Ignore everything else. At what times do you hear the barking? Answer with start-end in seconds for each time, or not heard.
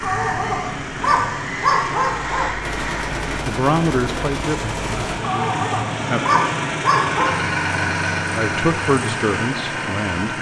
0.0-2.5, 5.2-7.3.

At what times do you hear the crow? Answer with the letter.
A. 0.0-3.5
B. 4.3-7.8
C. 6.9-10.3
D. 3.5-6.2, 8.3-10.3
A.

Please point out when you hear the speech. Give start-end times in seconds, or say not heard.
3.5-6.2, 8.3-10.3.